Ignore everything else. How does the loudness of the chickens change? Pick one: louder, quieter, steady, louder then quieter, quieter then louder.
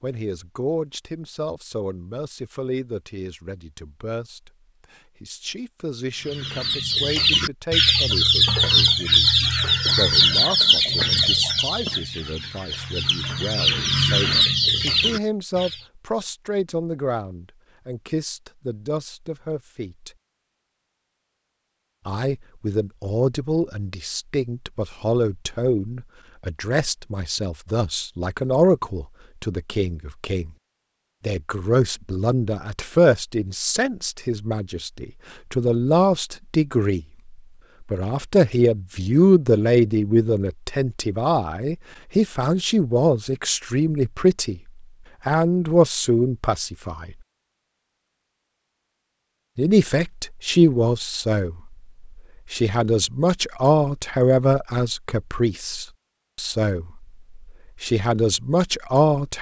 quieter then louder.